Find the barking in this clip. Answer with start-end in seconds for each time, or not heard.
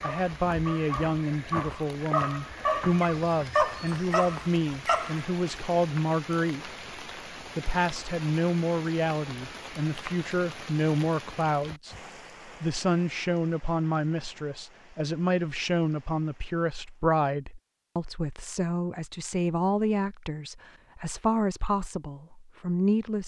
0.0-5.2.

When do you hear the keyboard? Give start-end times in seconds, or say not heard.
not heard.